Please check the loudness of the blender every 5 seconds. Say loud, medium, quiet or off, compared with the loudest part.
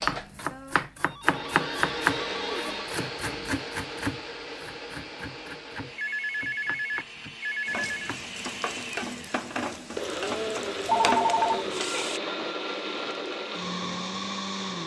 loud, medium, loud.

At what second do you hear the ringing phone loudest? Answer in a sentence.
The loudest moment of the ringing phone is at 11 seconds.